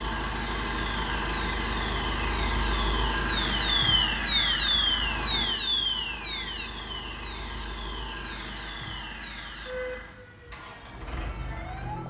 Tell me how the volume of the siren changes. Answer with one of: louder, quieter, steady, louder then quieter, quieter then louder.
louder then quieter.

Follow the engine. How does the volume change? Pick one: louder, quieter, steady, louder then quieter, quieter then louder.
quieter.